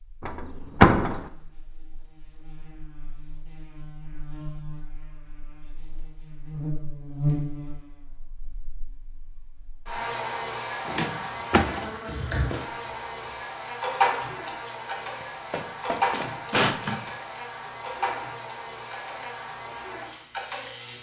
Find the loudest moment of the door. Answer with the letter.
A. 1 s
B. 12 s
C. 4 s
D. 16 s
A.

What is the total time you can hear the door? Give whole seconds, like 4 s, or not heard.
4 s.